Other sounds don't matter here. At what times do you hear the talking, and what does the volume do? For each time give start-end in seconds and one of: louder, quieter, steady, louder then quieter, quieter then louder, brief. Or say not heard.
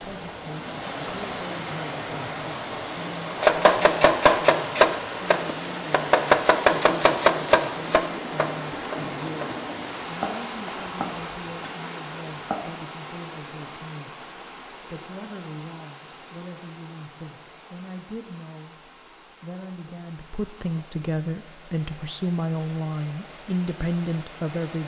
0.0-24.8 louder.